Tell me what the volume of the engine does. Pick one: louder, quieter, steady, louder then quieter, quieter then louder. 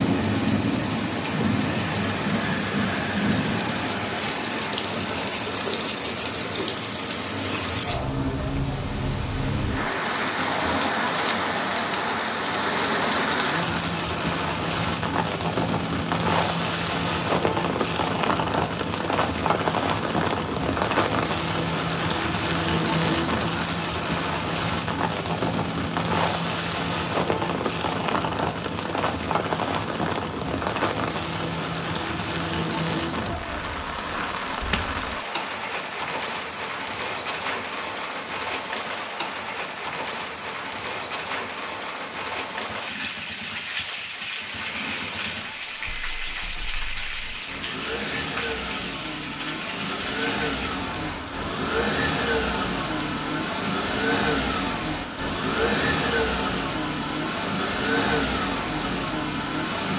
louder.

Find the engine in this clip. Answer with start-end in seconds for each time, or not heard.
42.6-59.9.